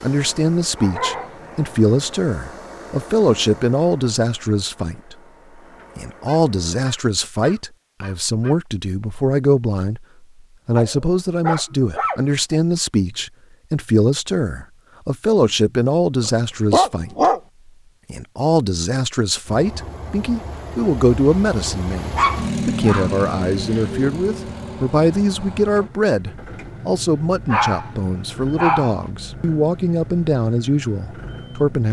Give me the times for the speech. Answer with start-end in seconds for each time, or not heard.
0.0-5.2, 6.0-10.1, 10.7-17.3, 18.1-31.8.